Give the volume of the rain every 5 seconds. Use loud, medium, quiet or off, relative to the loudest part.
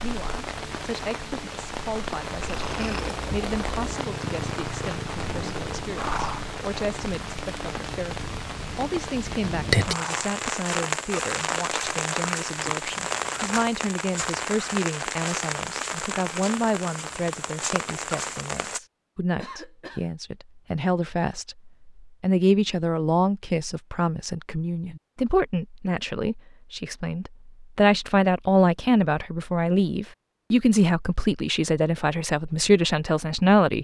medium, loud, loud, loud, off, off, off.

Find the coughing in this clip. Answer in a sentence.
You can hear the coughing from 19.4 to 20.1 s.